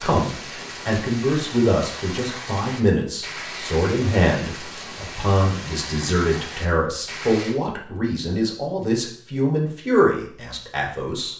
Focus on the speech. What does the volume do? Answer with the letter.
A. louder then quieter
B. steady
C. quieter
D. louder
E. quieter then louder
B.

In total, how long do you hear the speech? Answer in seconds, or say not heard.
11 s.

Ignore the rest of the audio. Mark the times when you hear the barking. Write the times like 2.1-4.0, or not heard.
not heard.